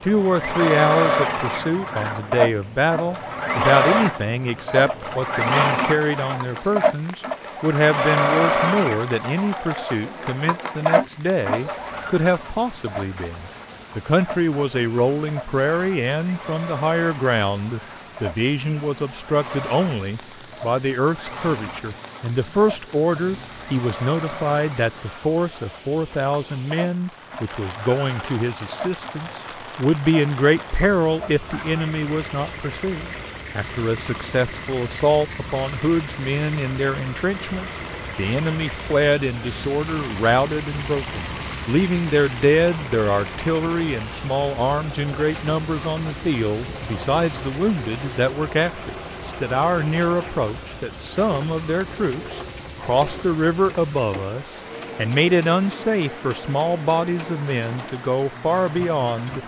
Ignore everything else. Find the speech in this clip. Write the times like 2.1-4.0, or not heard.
0.0-59.4.